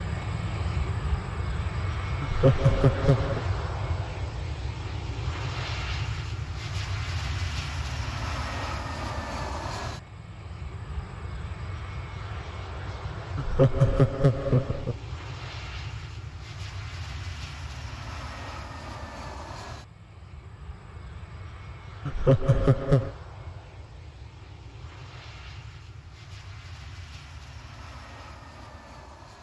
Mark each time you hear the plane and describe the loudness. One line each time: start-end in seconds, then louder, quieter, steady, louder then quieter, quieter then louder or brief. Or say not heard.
0.0-29.3 quieter.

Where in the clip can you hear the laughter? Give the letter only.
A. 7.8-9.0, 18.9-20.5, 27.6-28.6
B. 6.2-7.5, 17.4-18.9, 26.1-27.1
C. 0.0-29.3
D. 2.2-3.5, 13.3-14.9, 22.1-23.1
D.